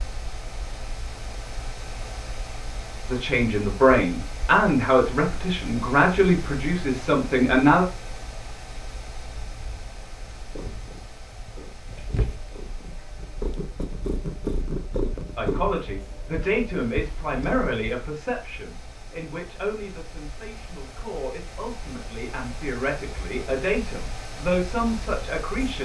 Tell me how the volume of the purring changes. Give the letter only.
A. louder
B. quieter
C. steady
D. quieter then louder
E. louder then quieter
E.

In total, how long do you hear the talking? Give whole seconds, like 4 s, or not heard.
15 s.